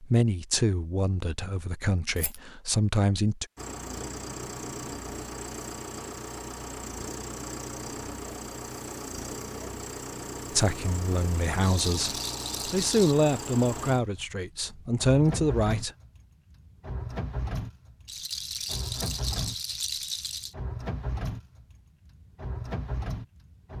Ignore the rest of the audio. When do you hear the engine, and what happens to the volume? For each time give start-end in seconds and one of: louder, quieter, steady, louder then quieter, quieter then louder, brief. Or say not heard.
3.5-23.7 steady.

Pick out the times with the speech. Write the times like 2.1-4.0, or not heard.
0.0-3.5, 10.5-15.9.